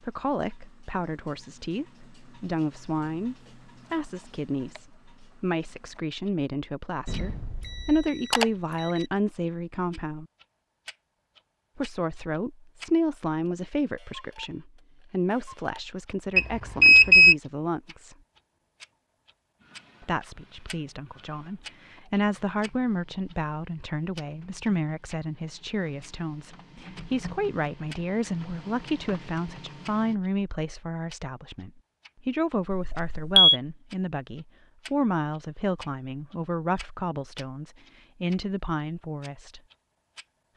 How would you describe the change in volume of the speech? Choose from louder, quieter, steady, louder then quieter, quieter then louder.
steady.